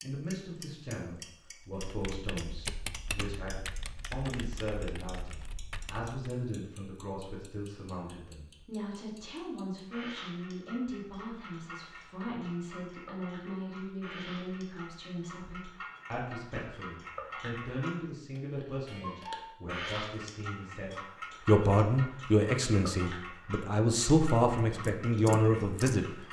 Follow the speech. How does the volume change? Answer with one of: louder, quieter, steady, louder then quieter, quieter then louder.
louder.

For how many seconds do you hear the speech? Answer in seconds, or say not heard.
26 s.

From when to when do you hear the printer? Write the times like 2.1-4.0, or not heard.
not heard.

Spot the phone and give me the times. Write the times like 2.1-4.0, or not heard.
not heard.